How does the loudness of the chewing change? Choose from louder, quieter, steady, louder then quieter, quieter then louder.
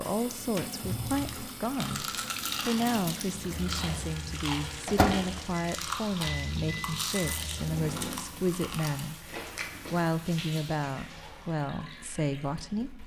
steady.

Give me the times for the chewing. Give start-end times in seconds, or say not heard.
0.8-10.1.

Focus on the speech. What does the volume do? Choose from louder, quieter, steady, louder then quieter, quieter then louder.
steady.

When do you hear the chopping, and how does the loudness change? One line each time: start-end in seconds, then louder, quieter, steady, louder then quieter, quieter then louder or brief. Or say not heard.
not heard.